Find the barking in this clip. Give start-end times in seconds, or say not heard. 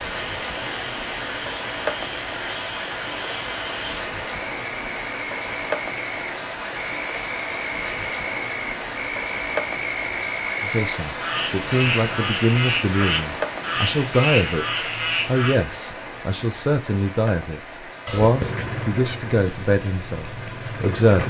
not heard.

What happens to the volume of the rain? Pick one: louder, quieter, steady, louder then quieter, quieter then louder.
quieter.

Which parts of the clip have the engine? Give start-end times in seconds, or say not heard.
18.2-21.2.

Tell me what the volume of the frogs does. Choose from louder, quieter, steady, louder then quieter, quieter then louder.
louder.